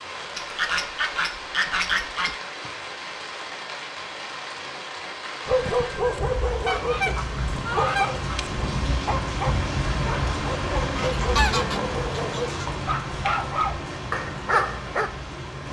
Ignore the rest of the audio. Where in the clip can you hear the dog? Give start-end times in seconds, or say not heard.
5.5-15.1.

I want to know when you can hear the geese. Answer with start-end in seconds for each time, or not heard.
0.3-2.4, 6.7-8.4, 10.9-12.7.